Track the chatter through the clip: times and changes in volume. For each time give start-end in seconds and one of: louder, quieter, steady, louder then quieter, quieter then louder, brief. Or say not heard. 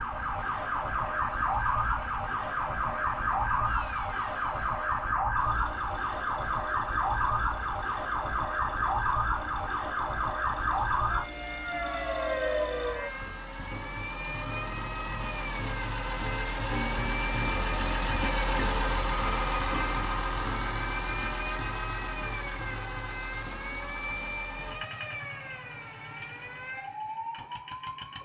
not heard.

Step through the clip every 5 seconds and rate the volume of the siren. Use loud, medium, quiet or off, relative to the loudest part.
loud, loud, loud, medium, medium, medium.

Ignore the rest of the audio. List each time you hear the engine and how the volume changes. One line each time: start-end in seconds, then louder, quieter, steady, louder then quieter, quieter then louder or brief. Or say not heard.
0.0-28.2 louder then quieter.